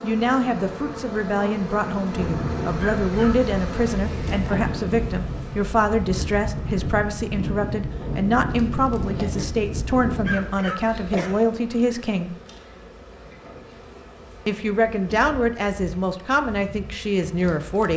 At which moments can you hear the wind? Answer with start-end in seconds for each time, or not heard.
0.1-10.3.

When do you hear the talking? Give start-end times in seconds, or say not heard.
0.0-12.3, 14.4-17.9.